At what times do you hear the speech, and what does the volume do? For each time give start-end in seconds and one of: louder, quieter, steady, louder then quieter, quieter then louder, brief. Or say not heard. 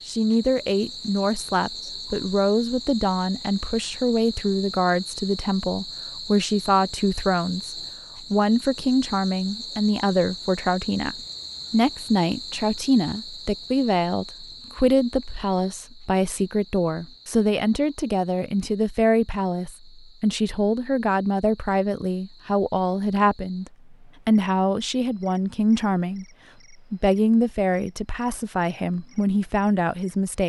0.1-30.4 steady.